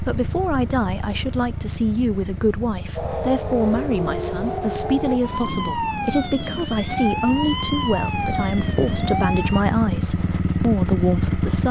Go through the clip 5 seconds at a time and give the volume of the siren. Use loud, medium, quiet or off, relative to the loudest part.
loud, loud, off.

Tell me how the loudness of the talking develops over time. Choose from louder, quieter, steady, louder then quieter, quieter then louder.
steady.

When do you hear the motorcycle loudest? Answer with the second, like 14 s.
11 s.